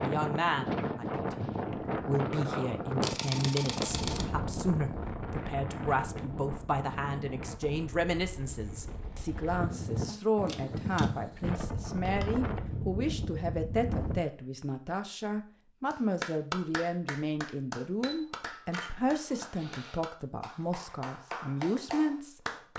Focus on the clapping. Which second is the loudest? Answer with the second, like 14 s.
16 s.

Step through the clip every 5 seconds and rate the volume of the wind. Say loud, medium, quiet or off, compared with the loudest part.
loud, medium, loud, off, off.